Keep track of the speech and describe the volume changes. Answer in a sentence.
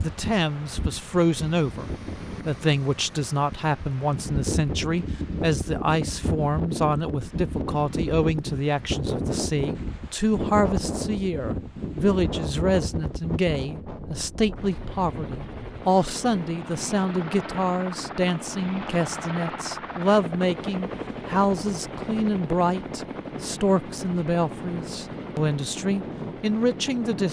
The loudness of the speech stays about the same.